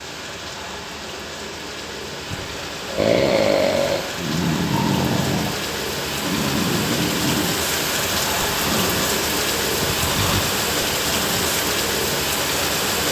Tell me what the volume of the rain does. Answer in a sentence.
The loudness of the rain goes up.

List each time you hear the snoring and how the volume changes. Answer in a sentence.
The snoring can be heard from 2.3 to 11.6 s, getting quieter.